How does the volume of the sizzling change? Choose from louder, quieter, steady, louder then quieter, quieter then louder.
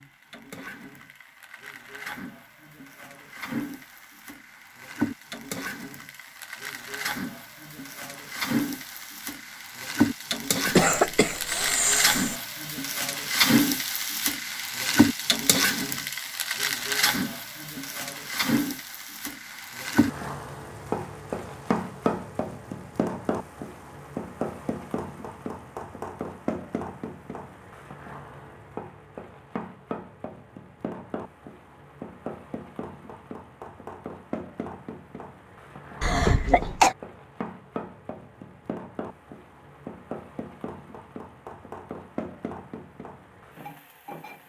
louder then quieter.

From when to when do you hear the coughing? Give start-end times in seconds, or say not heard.
10.7-12.3, 36.0-37.0.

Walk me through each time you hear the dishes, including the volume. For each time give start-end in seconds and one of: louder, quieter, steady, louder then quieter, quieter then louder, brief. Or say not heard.
not heard.